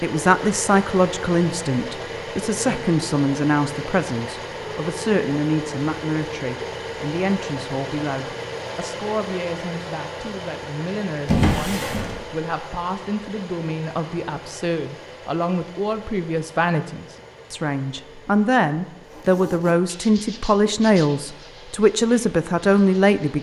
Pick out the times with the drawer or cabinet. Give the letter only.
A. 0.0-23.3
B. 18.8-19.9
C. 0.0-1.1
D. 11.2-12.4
D.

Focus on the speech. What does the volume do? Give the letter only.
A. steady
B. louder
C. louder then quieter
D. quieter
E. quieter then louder
E.